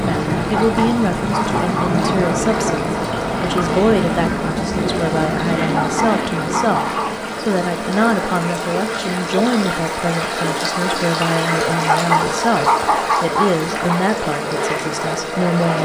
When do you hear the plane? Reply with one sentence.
The plane can be heard from 0.0 to 15.8 s.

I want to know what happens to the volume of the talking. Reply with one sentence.
The volume of the talking stays about the same.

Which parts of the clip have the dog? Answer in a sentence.
You can hear the dog from 0.6 to 2.0 s, from 5.7 to 7.3 s and from 11.8 to 14.0 s.